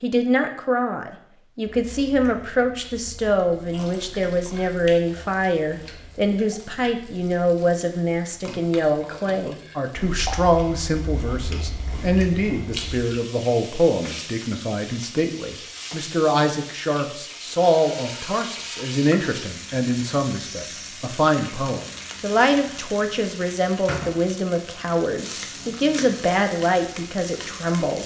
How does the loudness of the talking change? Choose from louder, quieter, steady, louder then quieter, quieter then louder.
steady.